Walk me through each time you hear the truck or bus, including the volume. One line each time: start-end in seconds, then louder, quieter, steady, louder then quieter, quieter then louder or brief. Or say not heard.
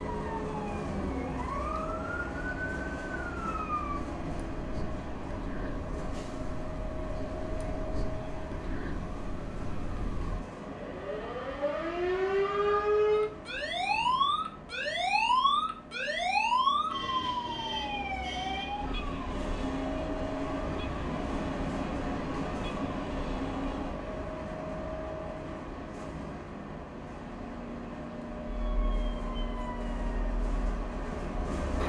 0.0-31.8 quieter then louder.